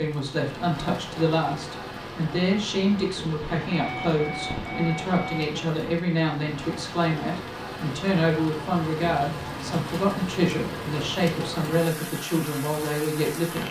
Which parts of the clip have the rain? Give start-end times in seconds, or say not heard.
0.0-13.6.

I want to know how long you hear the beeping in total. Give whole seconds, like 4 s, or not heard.
2 s.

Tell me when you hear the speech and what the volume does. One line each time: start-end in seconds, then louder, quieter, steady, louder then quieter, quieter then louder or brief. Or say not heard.
0.0-13.6 steady.